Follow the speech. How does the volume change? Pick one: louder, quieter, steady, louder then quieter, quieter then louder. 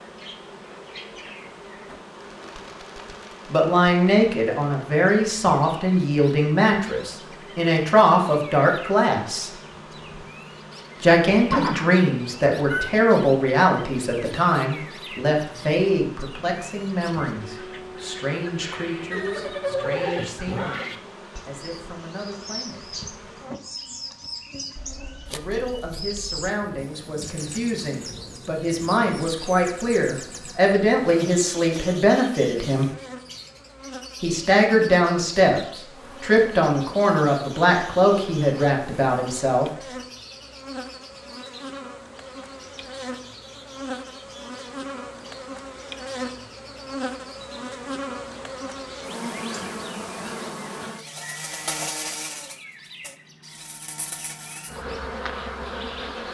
quieter then louder.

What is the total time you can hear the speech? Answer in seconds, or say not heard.
31 s.